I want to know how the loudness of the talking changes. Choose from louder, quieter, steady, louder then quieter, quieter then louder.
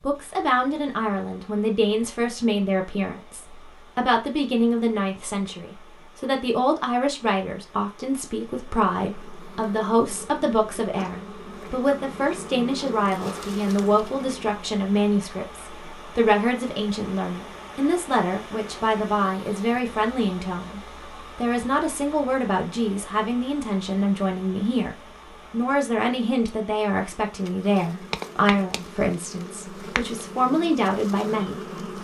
steady.